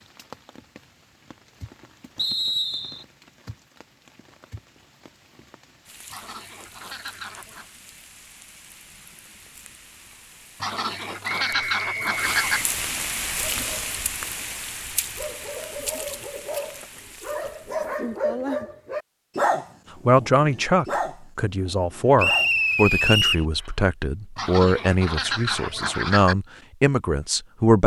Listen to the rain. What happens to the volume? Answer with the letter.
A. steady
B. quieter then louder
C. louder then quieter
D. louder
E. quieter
C.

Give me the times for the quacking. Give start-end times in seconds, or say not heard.
6.1-7.7, 10.6-12.6, 24.4-26.4.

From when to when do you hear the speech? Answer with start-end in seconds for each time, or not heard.
20.1-27.8.